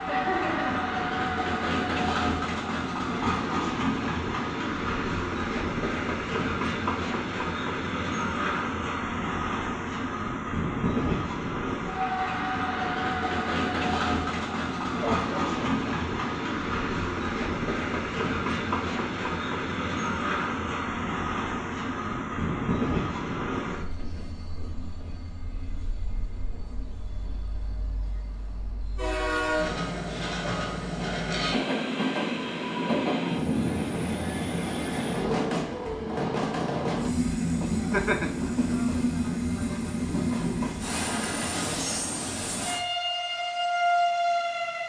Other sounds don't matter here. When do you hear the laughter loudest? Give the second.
38 s.